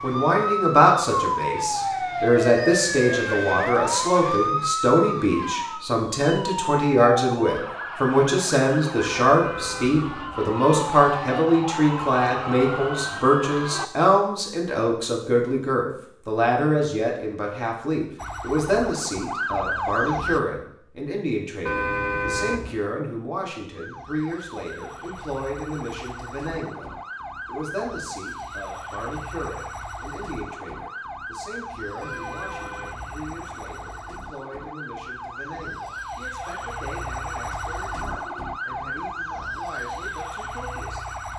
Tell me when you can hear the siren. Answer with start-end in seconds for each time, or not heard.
0.0-13.9, 18.1-20.4, 23.8-41.3.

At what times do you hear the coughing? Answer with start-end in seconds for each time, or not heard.
not heard.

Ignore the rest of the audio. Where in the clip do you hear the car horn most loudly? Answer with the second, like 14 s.
22 s.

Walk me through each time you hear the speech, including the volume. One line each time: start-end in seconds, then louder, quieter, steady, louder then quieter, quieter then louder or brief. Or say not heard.
0.0-41.2 quieter.